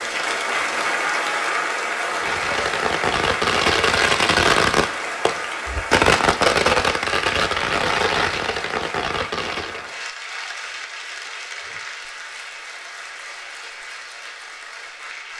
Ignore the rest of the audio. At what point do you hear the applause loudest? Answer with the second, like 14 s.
1 s.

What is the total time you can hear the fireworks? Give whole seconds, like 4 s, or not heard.
8 s.